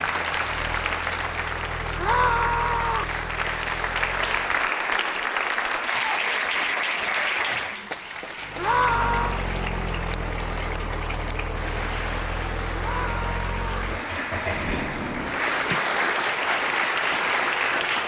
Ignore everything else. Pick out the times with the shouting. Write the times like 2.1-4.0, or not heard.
1.9-3.1, 8.6-9.4, 12.8-13.8.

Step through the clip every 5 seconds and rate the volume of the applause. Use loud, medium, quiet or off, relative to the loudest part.
loud, loud, medium, loud.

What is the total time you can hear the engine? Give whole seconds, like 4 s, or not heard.
14 s.